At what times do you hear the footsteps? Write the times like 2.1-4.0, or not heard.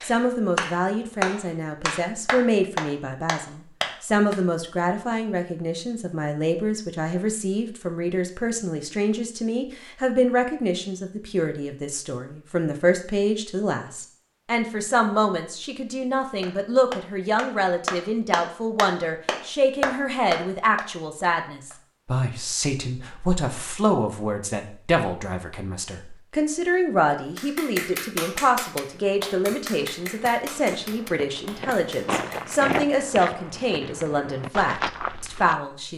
28.9-35.6.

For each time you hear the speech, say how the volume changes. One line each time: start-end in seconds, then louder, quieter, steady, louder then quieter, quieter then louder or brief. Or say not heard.
0.0-35.9 steady.